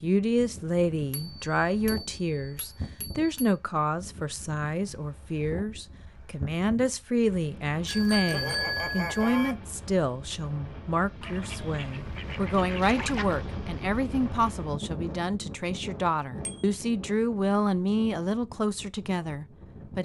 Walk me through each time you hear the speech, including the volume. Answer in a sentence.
The speech can be heard from 0.0 to 20.0 s, at a steady volume.